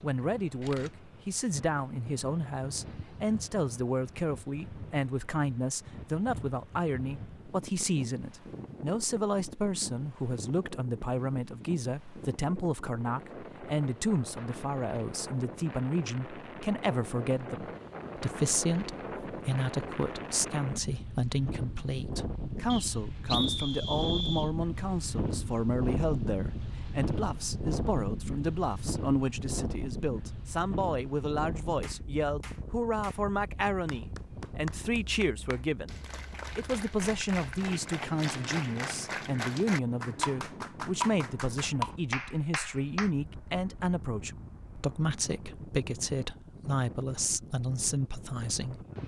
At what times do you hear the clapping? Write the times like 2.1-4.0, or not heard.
31.8-43.1.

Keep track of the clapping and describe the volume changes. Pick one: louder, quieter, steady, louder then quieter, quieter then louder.
louder.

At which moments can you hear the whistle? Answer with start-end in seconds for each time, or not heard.
22.7-24.5.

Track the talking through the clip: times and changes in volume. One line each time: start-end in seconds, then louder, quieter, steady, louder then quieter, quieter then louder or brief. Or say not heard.
0.0-48.9 steady.